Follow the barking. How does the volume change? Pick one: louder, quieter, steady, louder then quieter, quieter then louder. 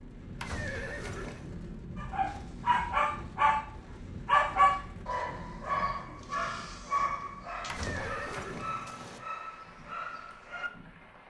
quieter.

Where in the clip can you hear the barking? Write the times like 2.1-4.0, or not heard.
1.9-10.7.